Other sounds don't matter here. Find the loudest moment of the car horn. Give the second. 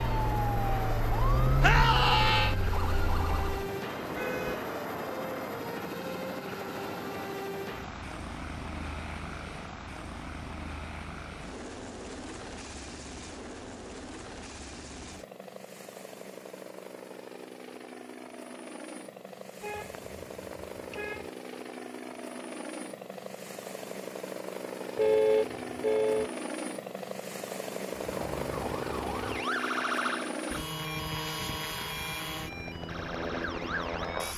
25 s.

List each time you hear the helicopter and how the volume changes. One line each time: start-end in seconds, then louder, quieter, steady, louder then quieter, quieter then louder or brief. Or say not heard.
0.0-34.3 quieter then louder.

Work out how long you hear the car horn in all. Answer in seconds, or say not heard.
4 s.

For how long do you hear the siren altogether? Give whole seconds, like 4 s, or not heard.
10 s.